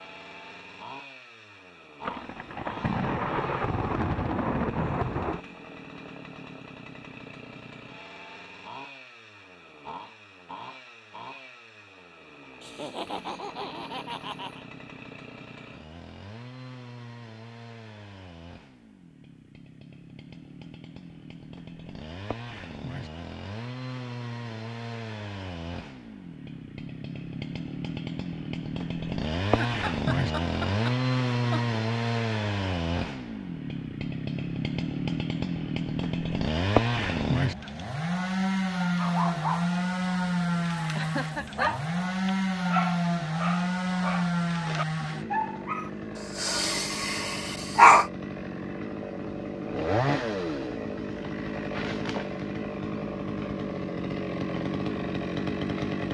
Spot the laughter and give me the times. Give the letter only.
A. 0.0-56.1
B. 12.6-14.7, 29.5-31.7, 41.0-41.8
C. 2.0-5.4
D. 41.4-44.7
B.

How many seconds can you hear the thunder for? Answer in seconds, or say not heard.
3 s.